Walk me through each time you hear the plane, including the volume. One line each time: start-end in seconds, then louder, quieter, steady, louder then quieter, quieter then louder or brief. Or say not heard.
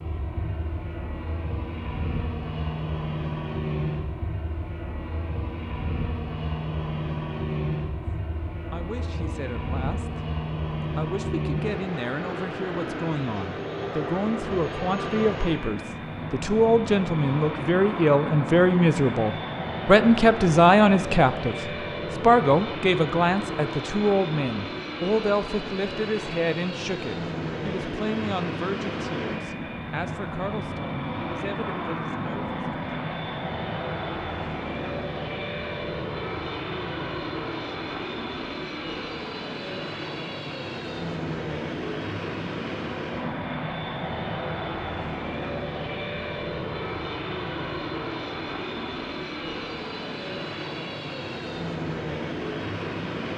0.0-53.3 steady.